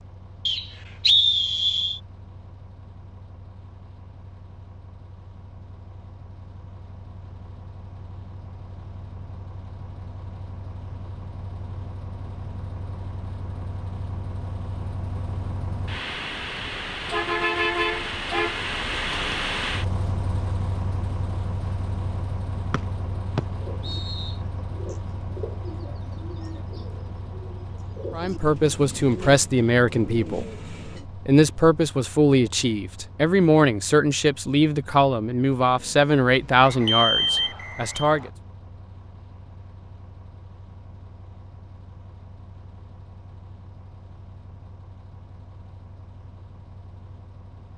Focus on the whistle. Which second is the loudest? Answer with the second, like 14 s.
1 s.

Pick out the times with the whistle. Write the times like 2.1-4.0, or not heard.
0.5-2.0, 22.7-24.4, 36.6-38.3.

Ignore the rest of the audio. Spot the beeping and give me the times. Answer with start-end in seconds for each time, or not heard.
36.9-38.1.